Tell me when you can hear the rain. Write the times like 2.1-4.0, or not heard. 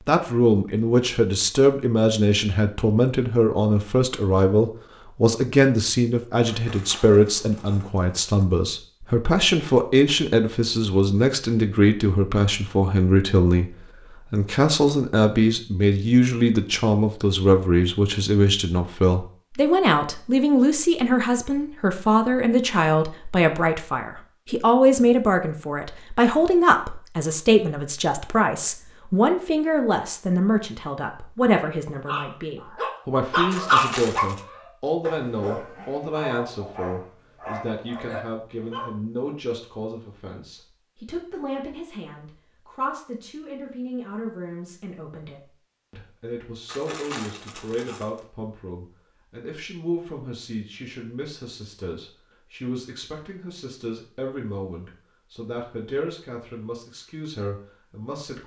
not heard.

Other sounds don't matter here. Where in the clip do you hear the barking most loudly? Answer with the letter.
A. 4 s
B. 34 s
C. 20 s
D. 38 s
B.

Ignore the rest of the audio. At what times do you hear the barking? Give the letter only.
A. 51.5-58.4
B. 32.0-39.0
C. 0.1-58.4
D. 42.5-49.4
B.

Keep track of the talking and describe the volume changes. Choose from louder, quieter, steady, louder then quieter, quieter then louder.
quieter.